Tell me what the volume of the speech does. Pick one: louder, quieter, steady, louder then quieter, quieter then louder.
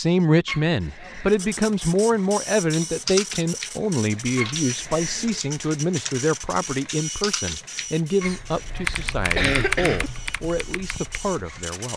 quieter.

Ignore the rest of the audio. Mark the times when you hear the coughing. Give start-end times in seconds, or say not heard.
0.5-1.4, 4.3-5.4, 8.2-10.1.